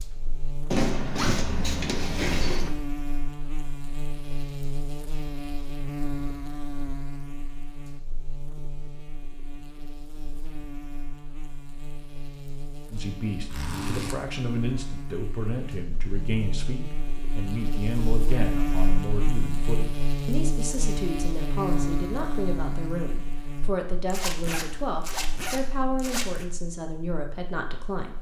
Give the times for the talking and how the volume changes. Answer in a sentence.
You can hear the talking from 12.9 to 28.1 s, at a steady volume.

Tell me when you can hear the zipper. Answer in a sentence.
You can hear the zipper from 0.7 to 2.7 s, from 13.5 to 14.2 s and from 24.1 to 26.4 s.